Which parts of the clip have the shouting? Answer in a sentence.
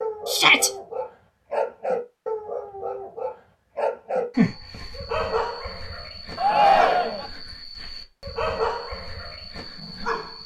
You can hear the shouting from 0.2 to 0.7 s and from 6.3 to 7.3 s.